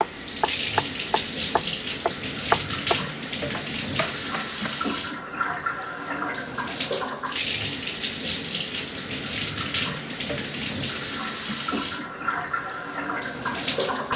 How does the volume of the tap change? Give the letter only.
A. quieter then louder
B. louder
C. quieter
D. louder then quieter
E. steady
E.